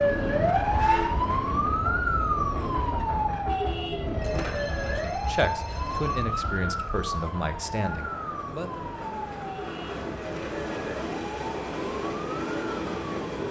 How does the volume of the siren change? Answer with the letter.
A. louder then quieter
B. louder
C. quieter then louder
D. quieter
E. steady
D.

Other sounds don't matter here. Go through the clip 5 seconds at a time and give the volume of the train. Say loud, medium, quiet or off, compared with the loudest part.
medium, medium, loud.